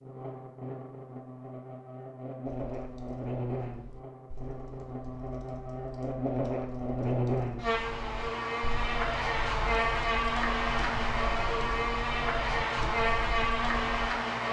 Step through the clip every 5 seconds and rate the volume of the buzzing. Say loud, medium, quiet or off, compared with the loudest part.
medium, loud, loud.